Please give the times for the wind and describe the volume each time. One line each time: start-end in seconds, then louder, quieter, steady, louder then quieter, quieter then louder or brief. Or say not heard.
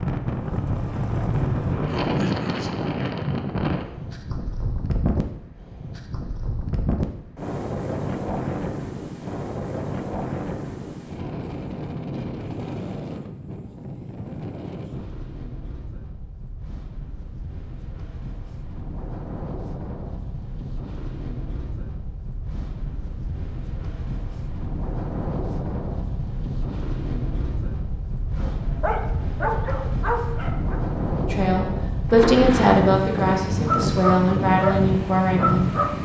0.0-36.0 quieter then louder.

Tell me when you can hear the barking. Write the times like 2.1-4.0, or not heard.
28.4-30.8, 33.6-36.0.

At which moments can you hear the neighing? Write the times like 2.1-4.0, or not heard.
32.0-32.8.